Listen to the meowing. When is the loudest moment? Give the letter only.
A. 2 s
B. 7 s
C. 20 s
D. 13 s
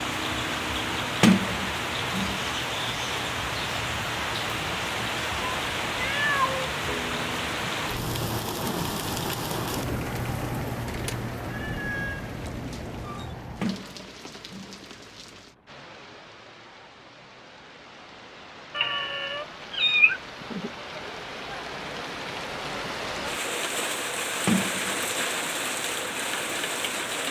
C.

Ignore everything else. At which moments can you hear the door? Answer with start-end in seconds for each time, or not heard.
1.2-2.4, 13.6-14.8, 24.4-24.9.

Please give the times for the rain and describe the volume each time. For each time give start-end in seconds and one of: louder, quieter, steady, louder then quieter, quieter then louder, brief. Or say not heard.
0.0-27.2 quieter then louder.